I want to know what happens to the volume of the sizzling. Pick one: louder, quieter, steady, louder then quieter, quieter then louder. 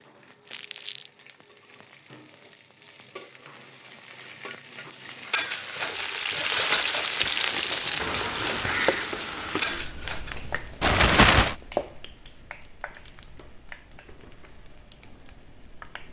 louder then quieter.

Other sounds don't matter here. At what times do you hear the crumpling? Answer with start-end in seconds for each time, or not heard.
0.5-1.1, 6.3-8.0, 10.8-11.6.